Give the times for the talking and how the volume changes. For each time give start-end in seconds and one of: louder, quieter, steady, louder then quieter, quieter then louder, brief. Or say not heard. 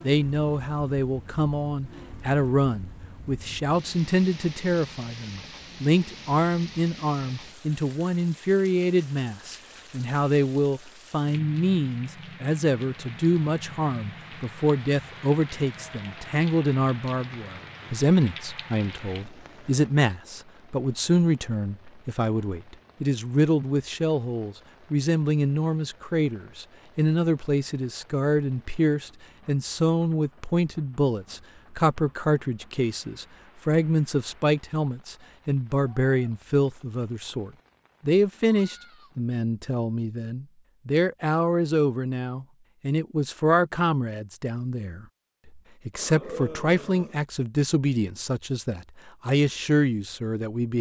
0.0-50.7 steady.